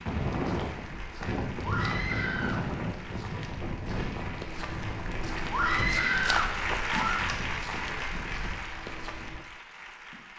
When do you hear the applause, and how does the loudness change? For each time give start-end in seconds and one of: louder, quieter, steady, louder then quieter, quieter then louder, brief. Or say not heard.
0.0-10.3 louder then quieter.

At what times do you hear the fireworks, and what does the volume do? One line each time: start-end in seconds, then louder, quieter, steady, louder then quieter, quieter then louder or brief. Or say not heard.
not heard.